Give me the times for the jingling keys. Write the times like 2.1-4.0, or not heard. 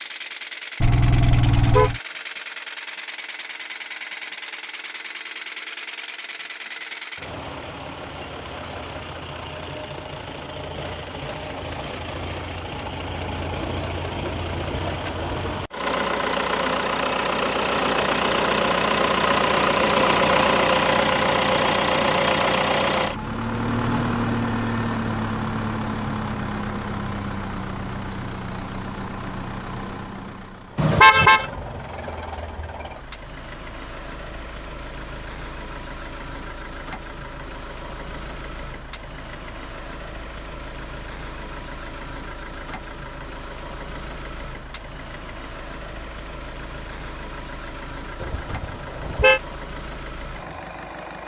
not heard.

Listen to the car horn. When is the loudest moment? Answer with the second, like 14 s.
31 s.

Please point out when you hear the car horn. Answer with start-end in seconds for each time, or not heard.
0.8-2.0, 30.8-31.5, 48.2-49.4.